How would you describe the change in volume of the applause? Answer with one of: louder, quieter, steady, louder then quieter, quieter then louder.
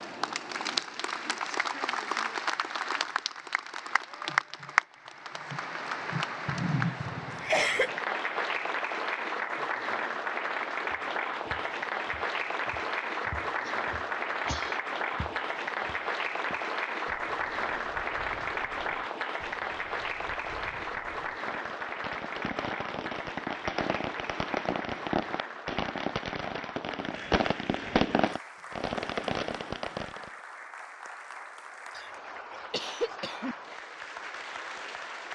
quieter.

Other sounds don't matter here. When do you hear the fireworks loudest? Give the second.
28 s.